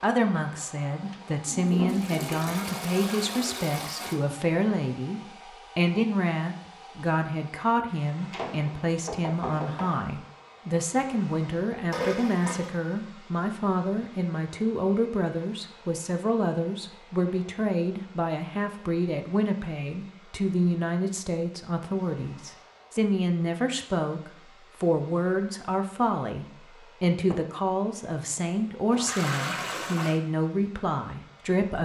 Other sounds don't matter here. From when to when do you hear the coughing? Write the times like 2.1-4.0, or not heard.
not heard.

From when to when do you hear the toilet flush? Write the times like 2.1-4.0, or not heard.
1.5-4.2, 11.9-12.8, 28.9-30.2.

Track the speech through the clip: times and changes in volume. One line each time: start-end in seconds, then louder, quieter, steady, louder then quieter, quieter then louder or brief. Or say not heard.
0.0-31.8 steady.